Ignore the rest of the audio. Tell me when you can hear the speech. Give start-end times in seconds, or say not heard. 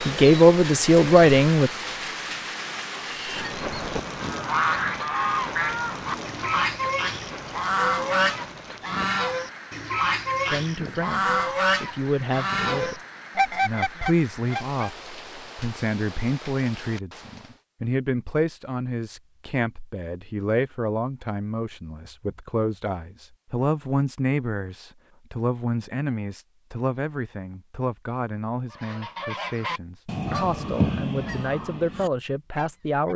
0.1-1.7, 10.4-33.1.